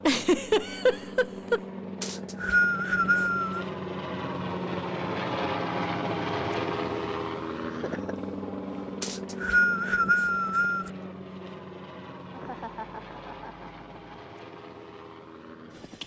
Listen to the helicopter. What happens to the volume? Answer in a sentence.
The loudness of the helicopter goes up, then down.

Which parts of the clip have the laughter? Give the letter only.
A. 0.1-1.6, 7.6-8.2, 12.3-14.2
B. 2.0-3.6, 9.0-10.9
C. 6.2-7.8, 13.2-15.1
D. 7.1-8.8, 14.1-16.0
A.